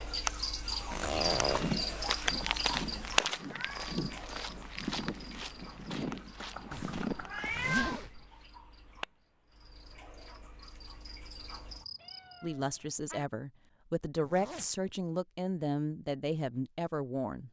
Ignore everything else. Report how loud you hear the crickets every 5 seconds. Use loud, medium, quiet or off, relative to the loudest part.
loud, quiet, quiet, off.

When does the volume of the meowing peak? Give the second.
8 s.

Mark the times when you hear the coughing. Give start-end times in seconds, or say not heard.
not heard.